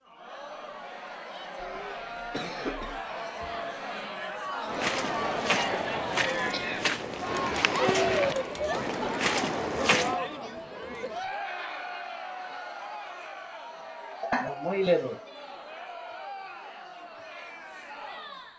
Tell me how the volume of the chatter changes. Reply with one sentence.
The volume of the chatter goes up, then down.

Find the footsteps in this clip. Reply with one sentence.
You can hear the footsteps from 4.7 to 10.2 s.